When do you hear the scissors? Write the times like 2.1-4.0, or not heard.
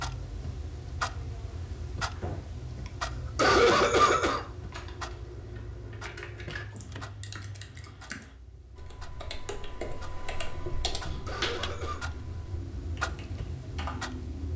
not heard.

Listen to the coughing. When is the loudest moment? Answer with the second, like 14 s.
4 s.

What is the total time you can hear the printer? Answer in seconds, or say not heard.
not heard.